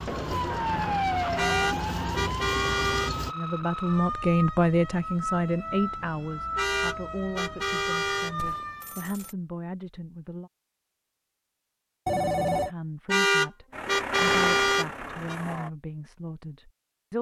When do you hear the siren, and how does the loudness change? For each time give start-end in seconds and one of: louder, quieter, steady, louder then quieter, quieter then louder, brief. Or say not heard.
0.0-9.1 quieter.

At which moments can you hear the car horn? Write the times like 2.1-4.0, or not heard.
1.4-3.1, 6.5-8.3, 13.1-15.3.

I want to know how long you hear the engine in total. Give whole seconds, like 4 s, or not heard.
5 s.